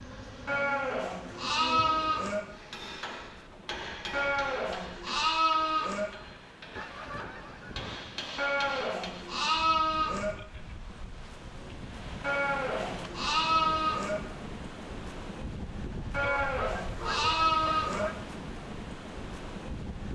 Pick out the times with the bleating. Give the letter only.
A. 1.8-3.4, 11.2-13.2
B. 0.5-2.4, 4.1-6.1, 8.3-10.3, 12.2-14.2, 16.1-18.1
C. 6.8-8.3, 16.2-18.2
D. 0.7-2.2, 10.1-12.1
B.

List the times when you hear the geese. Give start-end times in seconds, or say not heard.
6.8-8.3, 16.2-18.2.